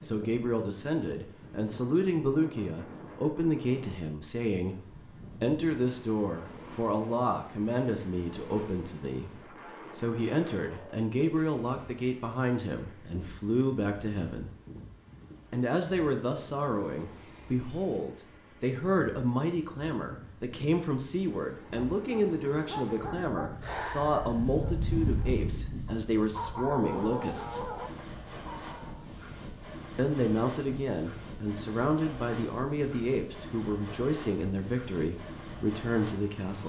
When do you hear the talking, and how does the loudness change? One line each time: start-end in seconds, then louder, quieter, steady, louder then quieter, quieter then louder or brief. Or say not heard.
0.0-14.5 steady
15.5-27.6 steady
29.9-36.6 steady.